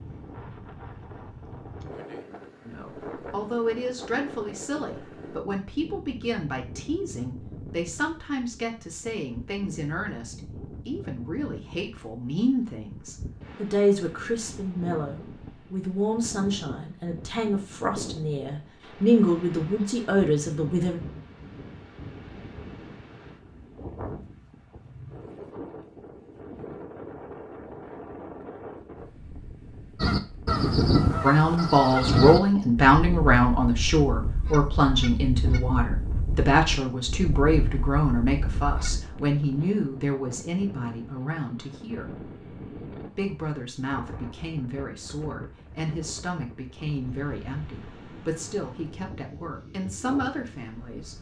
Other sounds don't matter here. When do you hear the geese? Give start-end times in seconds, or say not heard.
29.9-39.0.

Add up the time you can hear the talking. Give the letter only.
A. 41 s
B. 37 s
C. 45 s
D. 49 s
B.